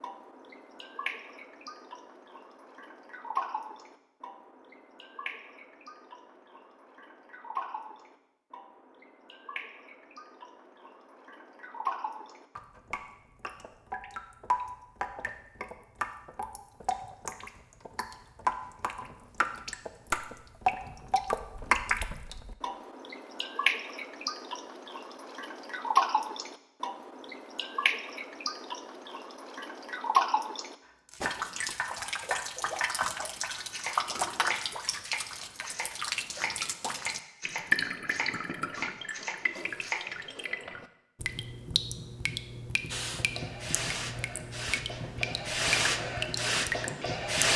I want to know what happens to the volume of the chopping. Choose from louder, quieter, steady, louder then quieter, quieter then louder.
steady.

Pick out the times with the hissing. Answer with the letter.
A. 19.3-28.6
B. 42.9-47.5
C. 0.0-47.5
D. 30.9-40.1
B.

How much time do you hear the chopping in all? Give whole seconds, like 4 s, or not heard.
9 s.